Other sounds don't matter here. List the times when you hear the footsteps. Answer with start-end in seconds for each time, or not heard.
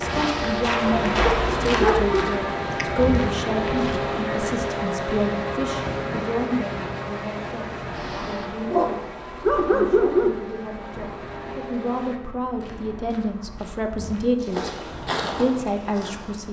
0.0-4.1, 12.4-16.4.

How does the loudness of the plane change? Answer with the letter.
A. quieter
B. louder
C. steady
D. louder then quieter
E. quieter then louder
A.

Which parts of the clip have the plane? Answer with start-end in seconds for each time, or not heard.
0.0-12.2.